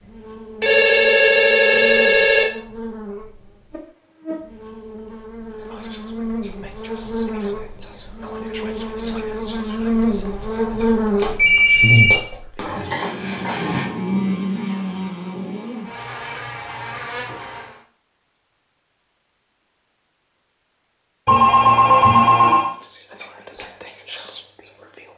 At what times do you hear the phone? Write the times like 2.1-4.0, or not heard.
0.6-2.5, 11.2-13.9, 21.2-22.7.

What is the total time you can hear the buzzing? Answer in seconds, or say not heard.
18 s.